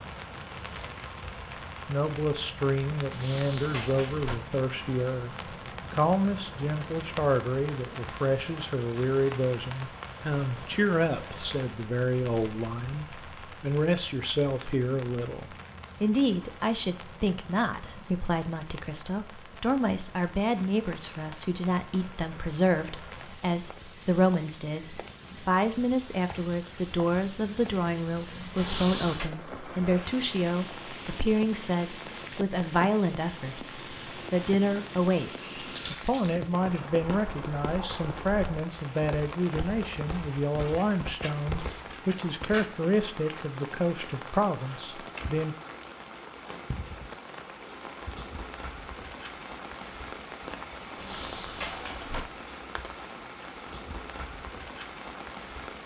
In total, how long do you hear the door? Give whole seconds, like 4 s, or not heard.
3 s.